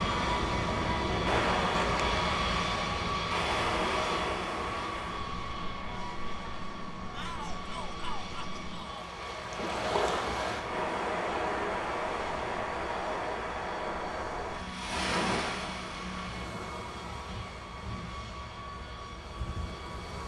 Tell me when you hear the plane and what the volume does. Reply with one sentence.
You can hear the plane from 0.0 to 20.2 s, getting quieter.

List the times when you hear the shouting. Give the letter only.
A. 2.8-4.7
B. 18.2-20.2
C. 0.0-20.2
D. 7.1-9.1
D.